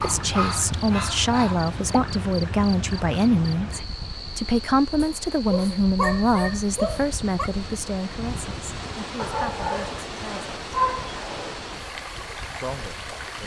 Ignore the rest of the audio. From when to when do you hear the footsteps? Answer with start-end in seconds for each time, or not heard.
not heard.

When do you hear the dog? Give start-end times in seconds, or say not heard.
0.0-1.8, 5.0-7.5, 9.2-11.6.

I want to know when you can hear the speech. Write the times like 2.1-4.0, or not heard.
0.0-10.5, 12.6-13.4.